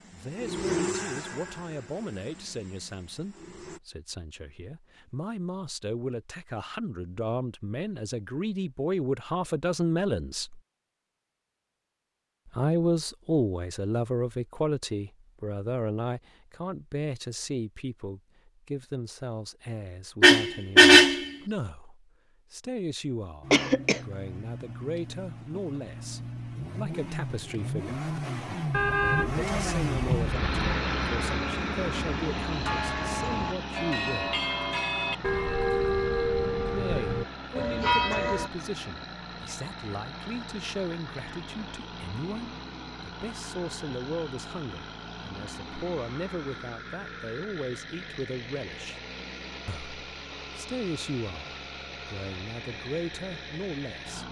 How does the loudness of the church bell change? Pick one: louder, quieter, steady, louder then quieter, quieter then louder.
louder.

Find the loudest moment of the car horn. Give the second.
21 s.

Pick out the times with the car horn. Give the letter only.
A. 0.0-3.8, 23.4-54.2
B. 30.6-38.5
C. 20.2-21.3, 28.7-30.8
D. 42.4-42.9
C.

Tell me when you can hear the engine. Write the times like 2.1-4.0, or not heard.
0.0-3.8, 23.4-54.2.